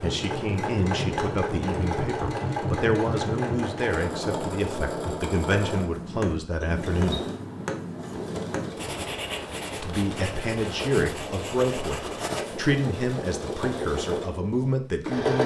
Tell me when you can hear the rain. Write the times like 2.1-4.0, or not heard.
not heard.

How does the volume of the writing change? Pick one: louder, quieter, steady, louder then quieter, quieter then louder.
steady.